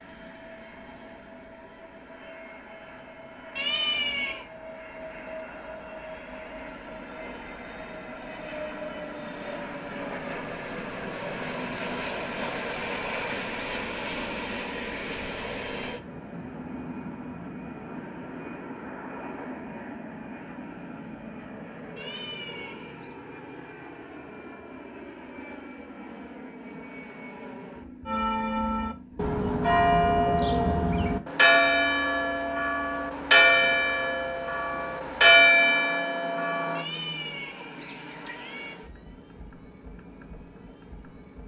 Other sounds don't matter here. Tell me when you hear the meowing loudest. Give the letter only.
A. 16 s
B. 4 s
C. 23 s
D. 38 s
B.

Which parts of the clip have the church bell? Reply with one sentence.
The church bell can be heard from 28.1 to 36.9 s.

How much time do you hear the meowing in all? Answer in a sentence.
You can hear the meowing for 4 seconds altogether.